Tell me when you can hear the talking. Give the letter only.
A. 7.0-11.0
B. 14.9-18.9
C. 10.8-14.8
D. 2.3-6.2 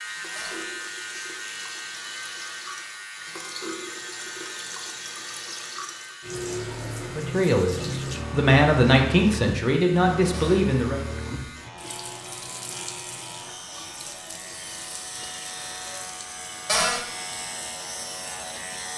A.